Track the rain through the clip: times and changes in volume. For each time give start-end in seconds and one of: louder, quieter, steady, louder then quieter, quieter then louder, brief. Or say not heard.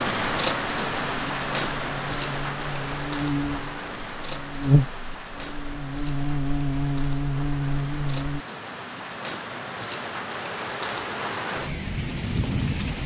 0.0-13.0 quieter then louder.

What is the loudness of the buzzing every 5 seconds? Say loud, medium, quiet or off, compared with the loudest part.
loud, loud, off.